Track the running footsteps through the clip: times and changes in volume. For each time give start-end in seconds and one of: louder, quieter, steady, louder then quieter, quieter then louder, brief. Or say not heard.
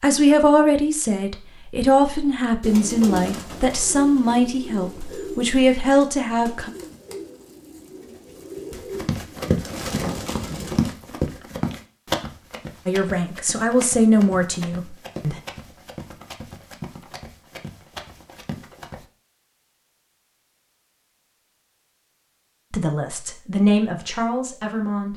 8.7-19.1 quieter.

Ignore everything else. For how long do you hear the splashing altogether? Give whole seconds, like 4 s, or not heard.
not heard.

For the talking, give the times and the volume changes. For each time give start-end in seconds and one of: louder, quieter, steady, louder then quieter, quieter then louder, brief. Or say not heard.
0.0-6.7 steady
12.8-15.3 brief
22.7-25.1 brief.